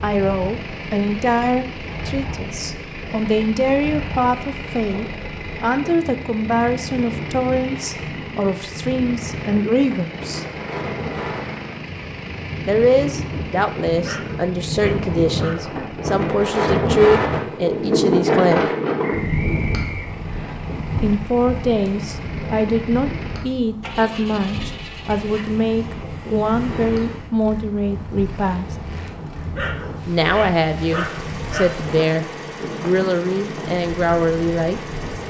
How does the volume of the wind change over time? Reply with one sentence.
The volume of the wind goes up, then down.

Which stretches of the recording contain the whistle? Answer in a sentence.
The whistle can be heard from 19.0 to 20.6 s.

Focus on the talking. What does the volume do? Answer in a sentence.
The volume of the talking stays about the same.